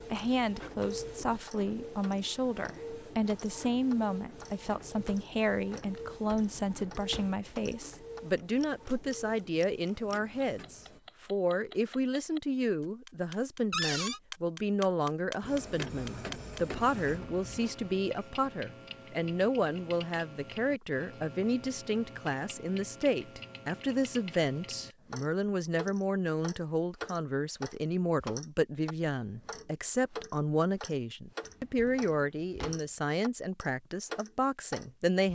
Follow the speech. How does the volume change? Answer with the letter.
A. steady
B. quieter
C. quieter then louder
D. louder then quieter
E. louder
A.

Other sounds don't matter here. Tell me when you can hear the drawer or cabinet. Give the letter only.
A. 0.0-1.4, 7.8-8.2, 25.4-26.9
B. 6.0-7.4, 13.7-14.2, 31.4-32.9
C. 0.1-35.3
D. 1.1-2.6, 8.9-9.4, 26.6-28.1
B.